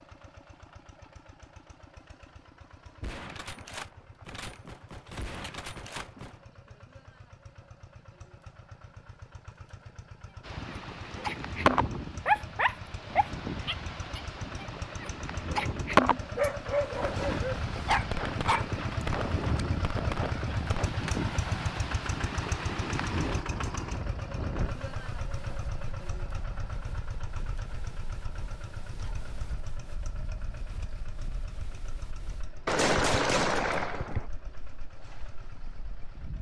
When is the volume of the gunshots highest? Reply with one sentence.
The loudest moment of the gunshots is at 33 seconds.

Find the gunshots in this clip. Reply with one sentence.
The gunshots can be heard from 3.0 to 6.4 s, from 17.0 to 20.9 s and from 32.6 to 34.2 s.